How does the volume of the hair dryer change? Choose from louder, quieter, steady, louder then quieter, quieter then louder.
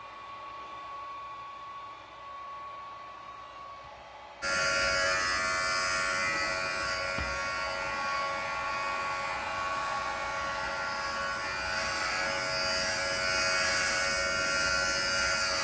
louder then quieter.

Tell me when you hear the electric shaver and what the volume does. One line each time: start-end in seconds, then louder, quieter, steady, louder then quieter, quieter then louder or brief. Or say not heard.
4.4-15.5 quieter then louder.